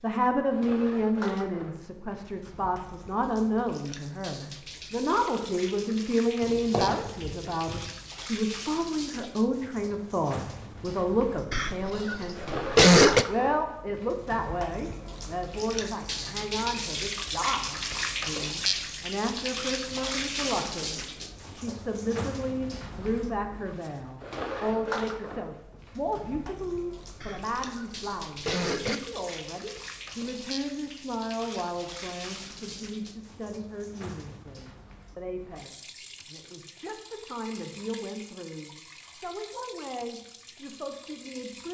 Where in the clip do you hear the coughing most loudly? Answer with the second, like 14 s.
13 s.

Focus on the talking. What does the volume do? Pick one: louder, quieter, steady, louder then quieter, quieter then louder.
quieter.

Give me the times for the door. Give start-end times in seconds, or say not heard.
6.4-8.2.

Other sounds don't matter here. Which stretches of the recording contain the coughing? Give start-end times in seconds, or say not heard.
11.5-13.2, 27.2-28.9.